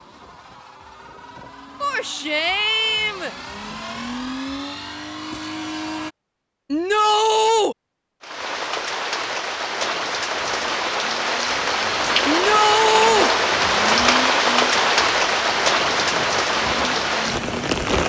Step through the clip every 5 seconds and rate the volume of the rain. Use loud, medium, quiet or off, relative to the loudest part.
off, medium, loud, loud.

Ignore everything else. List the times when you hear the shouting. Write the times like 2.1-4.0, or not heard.
1.8-3.4, 6.7-7.8, 12.2-13.3.